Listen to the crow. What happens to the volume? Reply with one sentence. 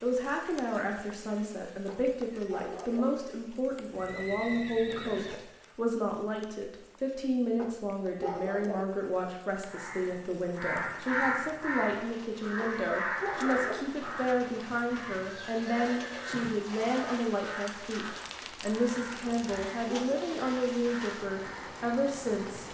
The volume of the crow goes down.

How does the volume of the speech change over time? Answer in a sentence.
The loudness of the speech stays about the same.